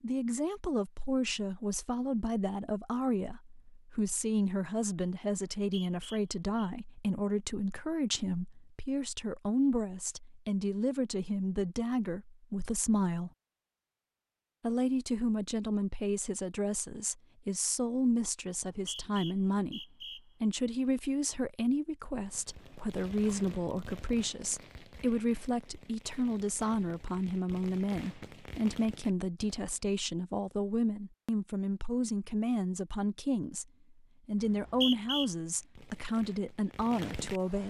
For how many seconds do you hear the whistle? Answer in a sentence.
The whistle can be heard for 4 seconds in total.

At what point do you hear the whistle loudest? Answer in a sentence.
The loudest moment of the whistle is at 35 seconds.